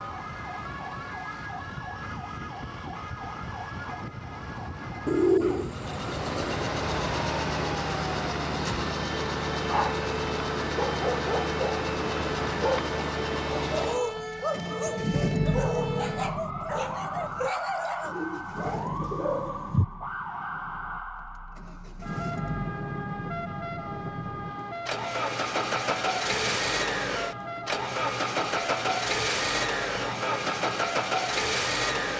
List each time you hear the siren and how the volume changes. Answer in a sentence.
The siren can be heard from 0.0 to 32.1 s, at a steady volume.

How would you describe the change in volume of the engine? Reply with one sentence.
The volume of the engine goes down, then up.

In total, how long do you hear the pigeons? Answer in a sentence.
You can hear the pigeons for 3 seconds altogether.